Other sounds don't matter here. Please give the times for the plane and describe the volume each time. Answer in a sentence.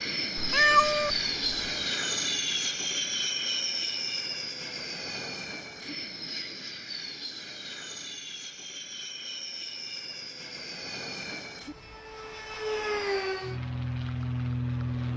You can hear the plane from 0.0 to 15.1 s, getting quieter then louder.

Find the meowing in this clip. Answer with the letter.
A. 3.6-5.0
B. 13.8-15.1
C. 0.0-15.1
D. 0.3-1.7
D.